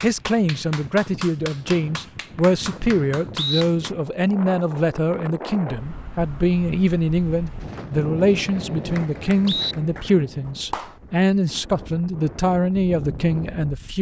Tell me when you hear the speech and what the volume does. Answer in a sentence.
You can hear the speech from 0.0 to 13.9 s, at a steady volume.